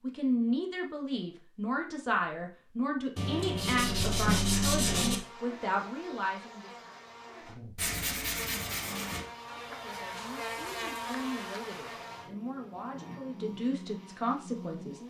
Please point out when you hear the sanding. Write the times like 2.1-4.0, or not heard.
3.1-5.2, 7.8-9.2.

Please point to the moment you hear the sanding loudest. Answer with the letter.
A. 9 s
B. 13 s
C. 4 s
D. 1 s
C.